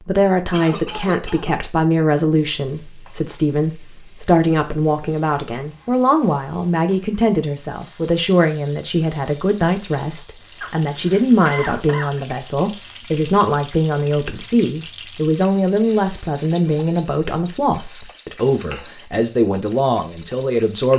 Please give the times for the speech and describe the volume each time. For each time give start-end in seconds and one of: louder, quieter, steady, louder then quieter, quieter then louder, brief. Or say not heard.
0.1-20.9 steady.